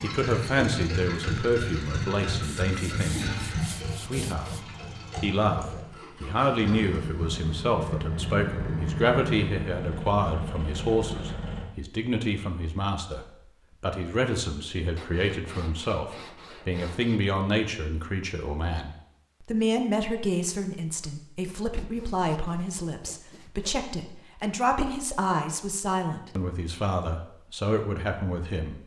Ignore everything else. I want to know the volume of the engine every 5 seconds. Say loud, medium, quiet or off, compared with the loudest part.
loud, loud, loud, off, off, off.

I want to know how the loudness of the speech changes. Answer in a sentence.
The volume of the speech stays about the same.